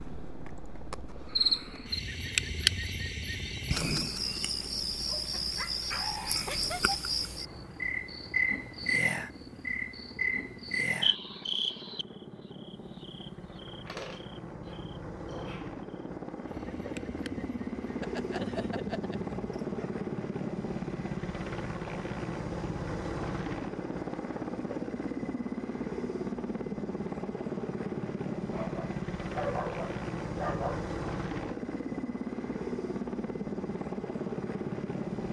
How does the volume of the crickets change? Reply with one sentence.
The volume of the crickets goes down.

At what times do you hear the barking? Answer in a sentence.
You can hear the barking from 5.3 to 7.0 s, from 13.8 to 15.7 s, from 18.0 to 19.9 s and from 28.5 to 30.9 s.